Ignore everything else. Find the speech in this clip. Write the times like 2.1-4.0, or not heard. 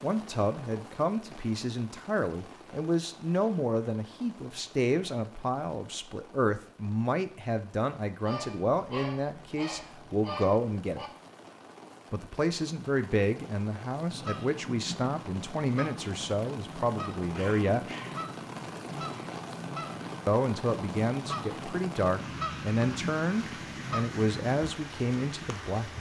0.0-11.1, 12.1-17.9, 20.2-25.9.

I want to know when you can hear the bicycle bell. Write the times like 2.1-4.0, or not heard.
not heard.